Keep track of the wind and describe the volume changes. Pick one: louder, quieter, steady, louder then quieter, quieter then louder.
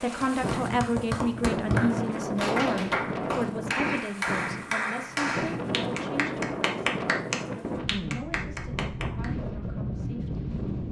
steady.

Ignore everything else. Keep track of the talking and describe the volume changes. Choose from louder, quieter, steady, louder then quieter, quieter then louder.
quieter.